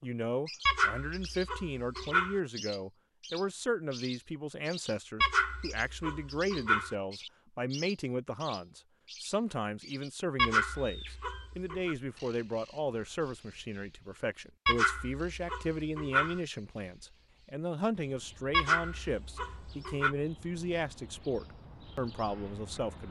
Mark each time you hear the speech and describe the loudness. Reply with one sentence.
You can hear the speech from 0.0 to 23.0 s, at a steady volume.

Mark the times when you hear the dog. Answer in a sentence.
You can hear the dog from 0.7 to 2.4 s, from 5.2 to 7.0 s, from 10.3 to 11.9 s, from 14.7 to 16.4 s and from 18.5 to 20.1 s.